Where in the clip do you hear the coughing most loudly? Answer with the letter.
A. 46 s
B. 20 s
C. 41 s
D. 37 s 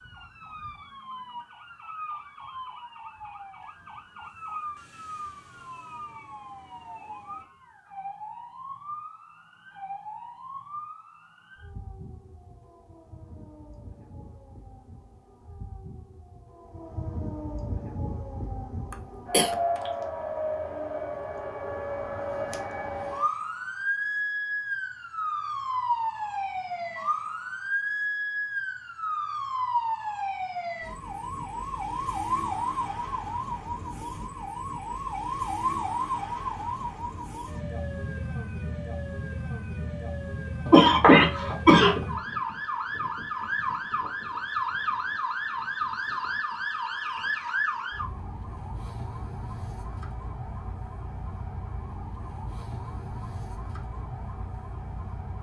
C.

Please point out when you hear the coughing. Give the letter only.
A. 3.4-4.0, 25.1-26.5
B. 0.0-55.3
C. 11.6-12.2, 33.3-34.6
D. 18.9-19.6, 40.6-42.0
D.